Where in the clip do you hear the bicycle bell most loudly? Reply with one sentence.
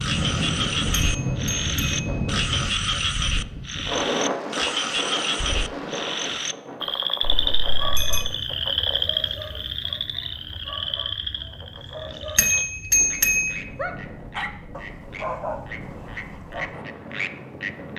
The volume of the bicycle bell peaks at 13 seconds.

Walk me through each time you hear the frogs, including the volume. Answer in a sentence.
You can hear the frogs from 0.0 to 17.9 s, getting quieter.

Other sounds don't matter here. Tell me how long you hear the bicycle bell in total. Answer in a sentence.
The bicycle bell can be heard for 3 seconds in total.